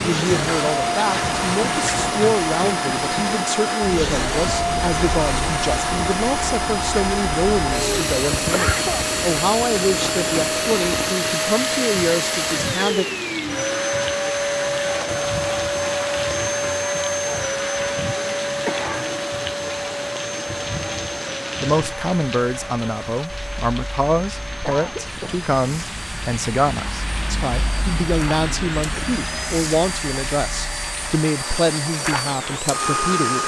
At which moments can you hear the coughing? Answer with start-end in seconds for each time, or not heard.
8.4-9.1, 18.6-19.1, 24.6-25.5.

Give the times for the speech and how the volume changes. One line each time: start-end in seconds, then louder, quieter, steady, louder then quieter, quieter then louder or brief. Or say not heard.
0.0-13.1 steady
21.6-33.4 steady.